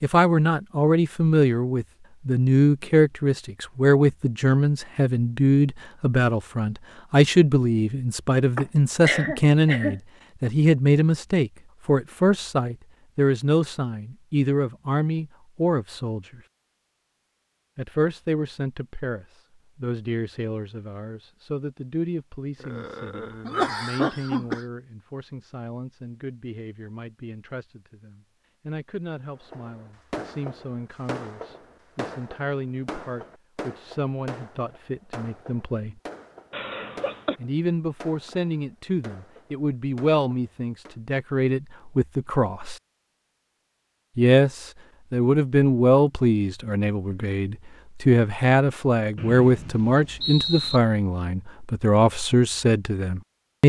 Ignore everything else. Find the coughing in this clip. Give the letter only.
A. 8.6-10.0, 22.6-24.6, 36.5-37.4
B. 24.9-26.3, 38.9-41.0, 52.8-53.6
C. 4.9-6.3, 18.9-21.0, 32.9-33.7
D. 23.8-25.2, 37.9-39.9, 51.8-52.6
A.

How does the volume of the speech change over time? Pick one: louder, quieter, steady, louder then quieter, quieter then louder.
quieter then louder.